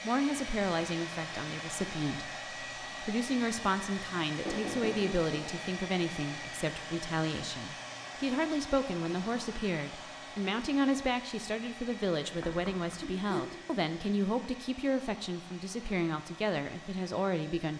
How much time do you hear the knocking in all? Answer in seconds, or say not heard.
2 s.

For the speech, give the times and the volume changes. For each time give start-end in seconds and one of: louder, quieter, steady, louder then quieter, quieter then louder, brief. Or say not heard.
0.0-17.7 steady.